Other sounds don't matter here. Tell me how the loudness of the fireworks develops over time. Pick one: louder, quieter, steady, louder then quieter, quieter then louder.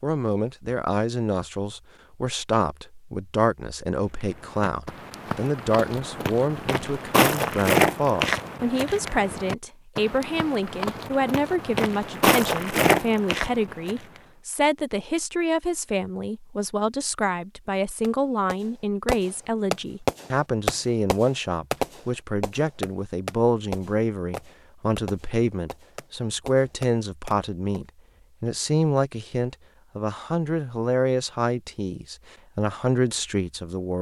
quieter.